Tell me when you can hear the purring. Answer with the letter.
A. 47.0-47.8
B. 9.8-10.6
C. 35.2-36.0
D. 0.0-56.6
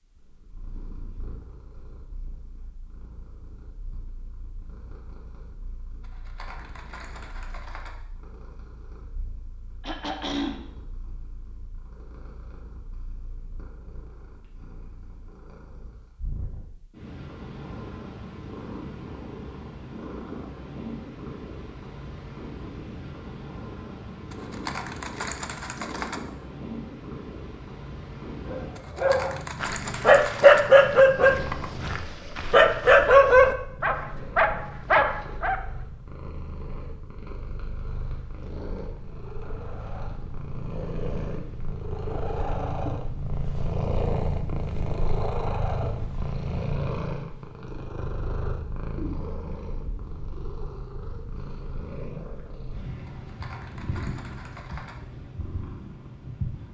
D.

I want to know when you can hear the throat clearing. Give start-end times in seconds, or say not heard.
9.8-10.6.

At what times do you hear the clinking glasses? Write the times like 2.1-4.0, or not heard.
not heard.